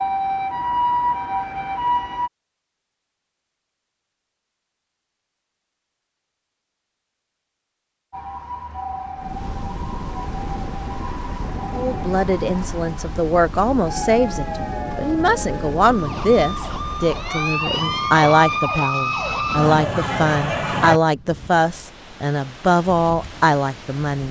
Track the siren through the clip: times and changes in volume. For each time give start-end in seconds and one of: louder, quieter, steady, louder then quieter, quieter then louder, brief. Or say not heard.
0.0-2.3 brief
8.1-21.0 louder.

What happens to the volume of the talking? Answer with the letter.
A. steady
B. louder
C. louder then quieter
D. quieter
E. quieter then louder
A.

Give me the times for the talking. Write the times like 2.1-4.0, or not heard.
11.8-24.2.